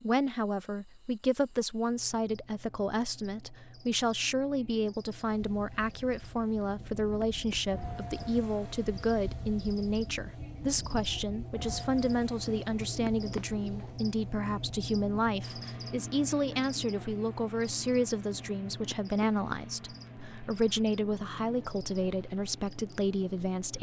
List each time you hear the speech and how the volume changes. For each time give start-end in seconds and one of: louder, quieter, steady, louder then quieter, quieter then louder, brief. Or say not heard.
0.0-23.7 steady.